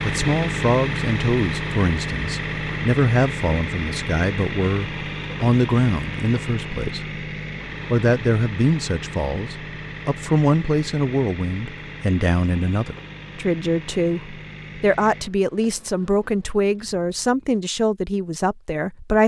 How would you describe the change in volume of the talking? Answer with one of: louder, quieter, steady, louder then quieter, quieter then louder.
steady.